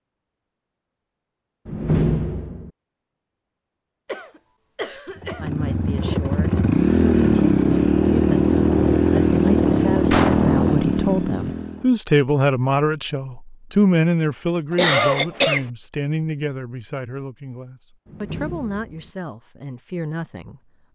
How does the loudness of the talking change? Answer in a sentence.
The volume of the talking goes up, then down.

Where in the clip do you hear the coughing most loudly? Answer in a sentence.
The loudest moment of the coughing is at 15 seconds.